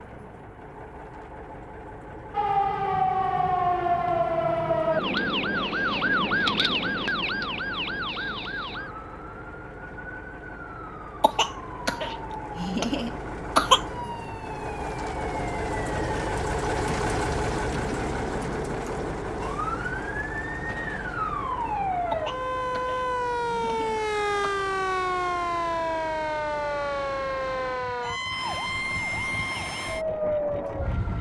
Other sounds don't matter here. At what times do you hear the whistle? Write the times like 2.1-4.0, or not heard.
not heard.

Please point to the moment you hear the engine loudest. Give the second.
17 s.